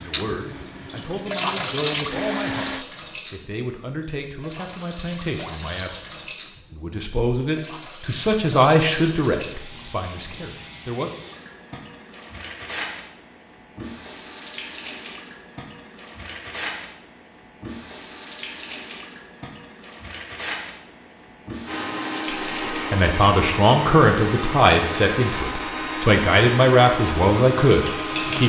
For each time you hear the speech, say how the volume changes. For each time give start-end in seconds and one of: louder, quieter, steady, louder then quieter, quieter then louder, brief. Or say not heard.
0.0-11.1 louder
22.7-28.4 quieter then louder.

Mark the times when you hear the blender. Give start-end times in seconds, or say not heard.
0.0-2.9, 21.6-28.4.